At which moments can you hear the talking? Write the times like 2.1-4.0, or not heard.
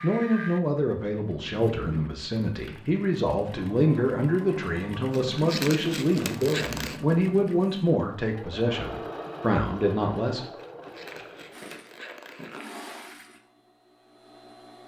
0.0-10.4.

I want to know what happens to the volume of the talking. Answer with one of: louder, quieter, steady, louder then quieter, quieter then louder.
steady.